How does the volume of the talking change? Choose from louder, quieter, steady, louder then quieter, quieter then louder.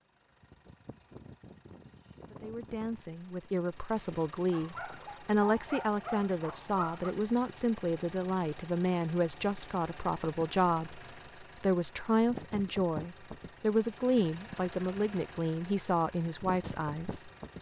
steady.